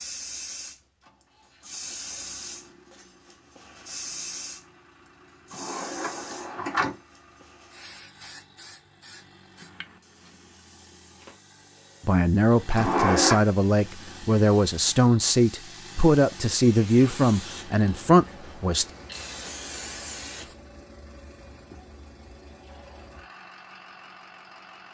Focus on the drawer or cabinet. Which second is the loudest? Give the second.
13 s.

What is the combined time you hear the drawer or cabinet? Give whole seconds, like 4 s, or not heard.
2 s.